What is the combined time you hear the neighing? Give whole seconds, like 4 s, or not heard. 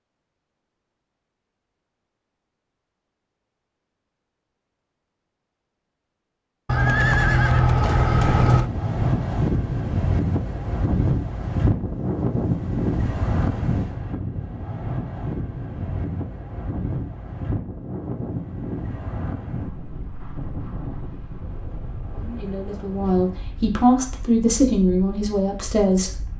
2 s.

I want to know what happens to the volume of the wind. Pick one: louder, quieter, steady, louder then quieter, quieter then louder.
quieter.